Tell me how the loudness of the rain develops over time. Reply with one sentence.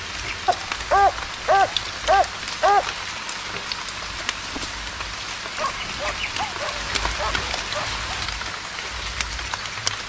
The loudness of the rain stays about the same.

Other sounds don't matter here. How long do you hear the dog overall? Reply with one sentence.
You can hear the dog for 5 seconds altogether.